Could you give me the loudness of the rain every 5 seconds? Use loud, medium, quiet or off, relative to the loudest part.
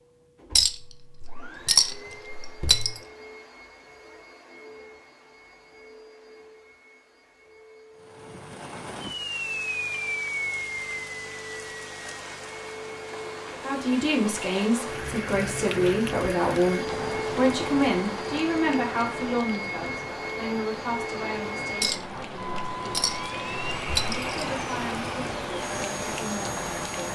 off, loud, loud, loud, loud, loud.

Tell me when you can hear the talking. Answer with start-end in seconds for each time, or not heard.
13.6-27.0.